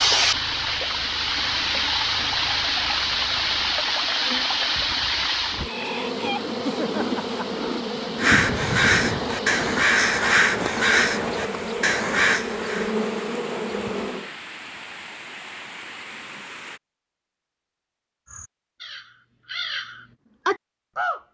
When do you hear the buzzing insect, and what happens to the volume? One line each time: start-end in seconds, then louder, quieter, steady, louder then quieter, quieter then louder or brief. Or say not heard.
0.0-14.3 louder.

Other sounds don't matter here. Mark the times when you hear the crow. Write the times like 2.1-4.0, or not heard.
8.2-13.0, 18.2-21.2.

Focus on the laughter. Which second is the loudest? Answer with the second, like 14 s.
7 s.